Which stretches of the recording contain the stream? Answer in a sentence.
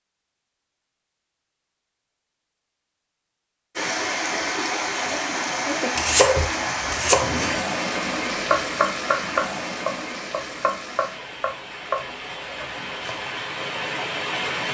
The stream can be heard from 3.8 to 14.6 s.